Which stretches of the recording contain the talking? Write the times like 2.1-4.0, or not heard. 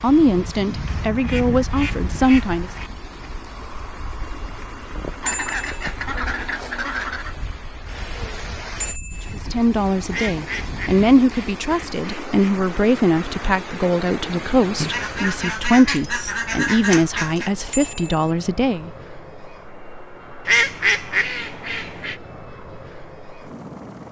0.0-2.7, 9.3-18.9.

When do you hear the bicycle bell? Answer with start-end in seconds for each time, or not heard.
5.2-5.8, 8.8-9.4, 17.7-18.3.